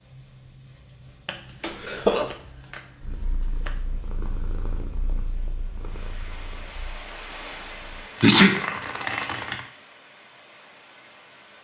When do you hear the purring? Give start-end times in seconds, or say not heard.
3.0-8.1.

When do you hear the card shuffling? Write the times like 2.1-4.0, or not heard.
1.2-3.8, 8.2-9.7.